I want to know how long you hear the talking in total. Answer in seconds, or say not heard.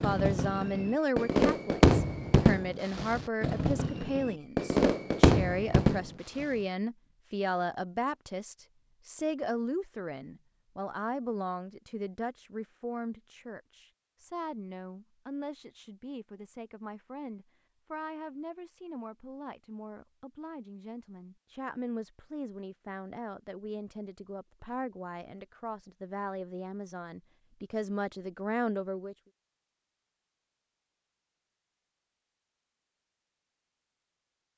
29 s.